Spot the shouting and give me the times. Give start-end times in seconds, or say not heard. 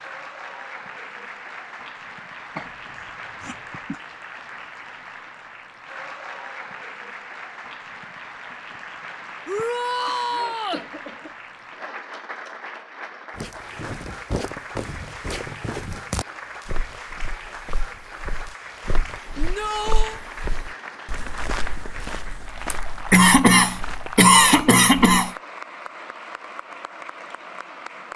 9.4-10.8, 19.4-20.2.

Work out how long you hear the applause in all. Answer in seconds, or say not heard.
28 s.